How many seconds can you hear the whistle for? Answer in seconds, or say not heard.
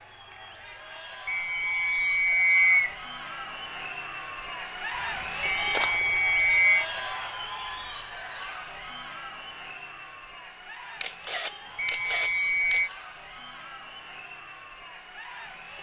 4 s.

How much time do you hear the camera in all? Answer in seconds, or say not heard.
3 s.